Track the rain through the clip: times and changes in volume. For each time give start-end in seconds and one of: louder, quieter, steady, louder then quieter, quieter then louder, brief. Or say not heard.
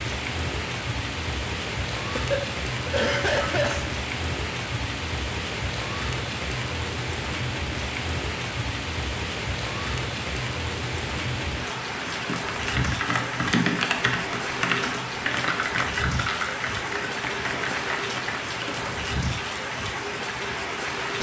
0.0-21.1 steady.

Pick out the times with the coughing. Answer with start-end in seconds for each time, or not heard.
2.1-3.9.